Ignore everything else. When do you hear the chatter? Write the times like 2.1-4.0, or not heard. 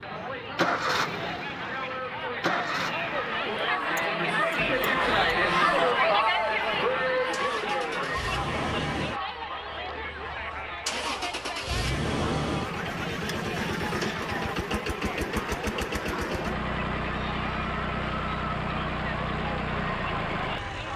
0.0-20.9.